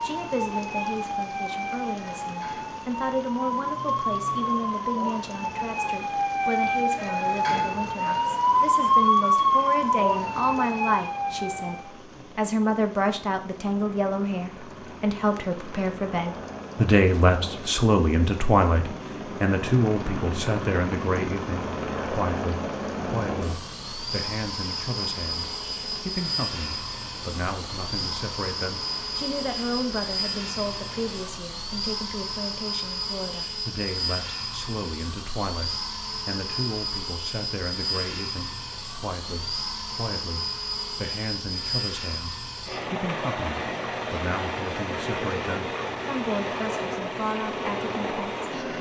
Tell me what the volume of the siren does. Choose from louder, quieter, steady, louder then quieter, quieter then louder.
louder.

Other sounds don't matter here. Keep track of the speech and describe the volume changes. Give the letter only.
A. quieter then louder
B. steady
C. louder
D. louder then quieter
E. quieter
D.